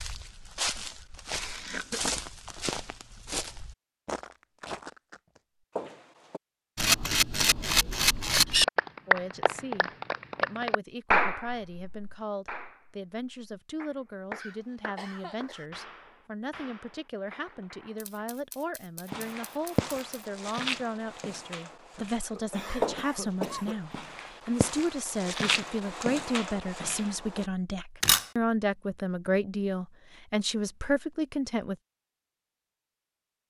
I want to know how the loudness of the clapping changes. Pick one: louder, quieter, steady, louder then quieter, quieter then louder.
quieter.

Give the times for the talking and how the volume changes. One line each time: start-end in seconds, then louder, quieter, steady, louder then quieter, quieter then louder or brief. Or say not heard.
9.1-31.8 louder.